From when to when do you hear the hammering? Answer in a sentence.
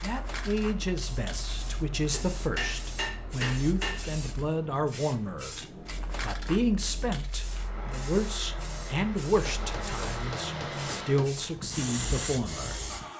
You can hear the hammering from 2.1 to 4.2 s and from 9.4 to 11.3 s.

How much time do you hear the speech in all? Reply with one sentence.
You can hear the speech for 12 seconds altogether.